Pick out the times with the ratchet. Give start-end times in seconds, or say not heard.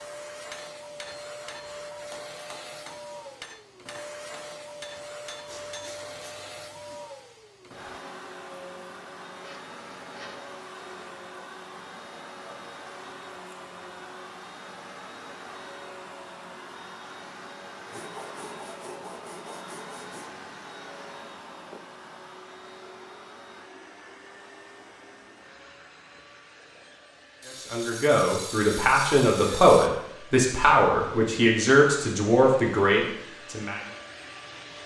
not heard.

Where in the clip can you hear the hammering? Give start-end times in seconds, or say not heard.
0.3-6.0.